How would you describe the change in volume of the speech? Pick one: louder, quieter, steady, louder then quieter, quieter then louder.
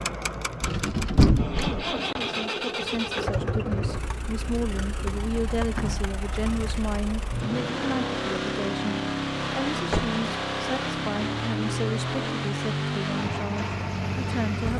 steady.